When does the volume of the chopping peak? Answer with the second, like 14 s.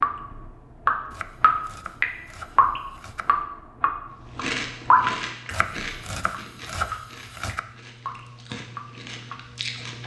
7 s.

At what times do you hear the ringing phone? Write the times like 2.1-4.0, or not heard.
not heard.